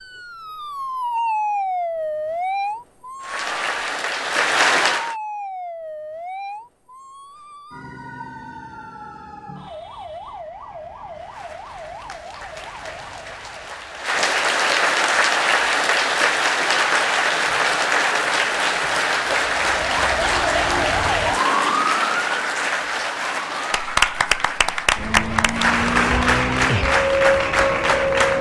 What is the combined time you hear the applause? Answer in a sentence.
The applause can be heard for 19 seconds in total.